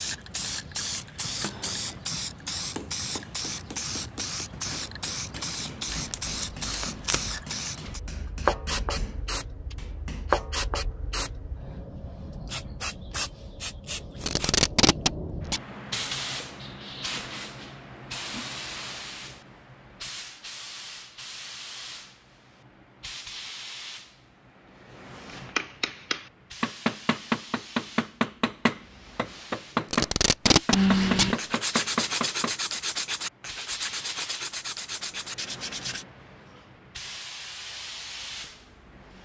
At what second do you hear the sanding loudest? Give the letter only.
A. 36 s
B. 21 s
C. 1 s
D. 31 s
D.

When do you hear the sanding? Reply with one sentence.
The sanding can be heard from 30.7 to 36.0 s.